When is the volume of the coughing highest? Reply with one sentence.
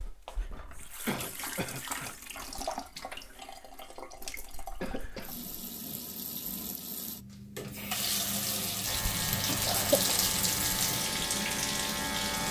The volume of the coughing peaks at 10 seconds.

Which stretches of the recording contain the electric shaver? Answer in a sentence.
The electric shaver can be heard from 8.8 to 12.4 s.